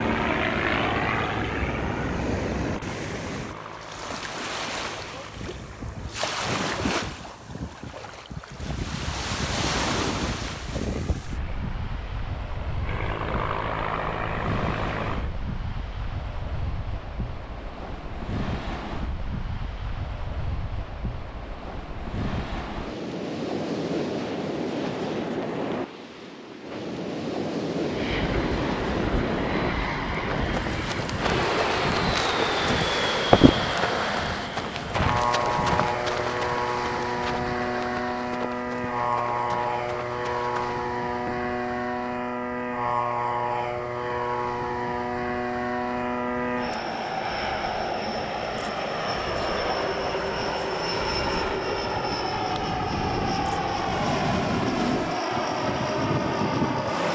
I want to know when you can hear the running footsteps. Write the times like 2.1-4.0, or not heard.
30.2-41.4.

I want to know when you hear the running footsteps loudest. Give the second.
33 s.